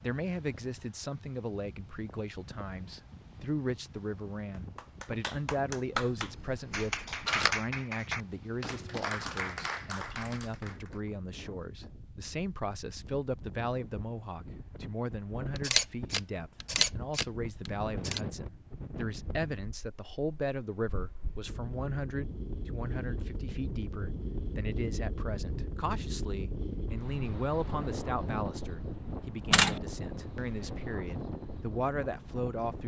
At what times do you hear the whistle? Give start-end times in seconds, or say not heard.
not heard.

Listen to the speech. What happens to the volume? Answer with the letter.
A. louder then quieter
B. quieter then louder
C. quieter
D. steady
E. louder
D.